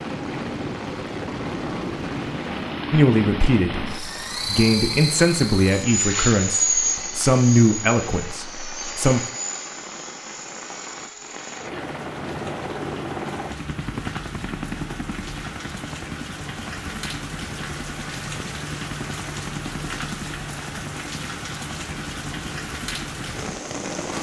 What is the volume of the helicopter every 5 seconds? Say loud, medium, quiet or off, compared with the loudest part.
loud, loud, medium, medium, medium.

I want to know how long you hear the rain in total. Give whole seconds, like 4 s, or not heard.
24 s.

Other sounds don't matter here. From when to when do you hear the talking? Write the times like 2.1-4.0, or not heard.
2.9-9.2.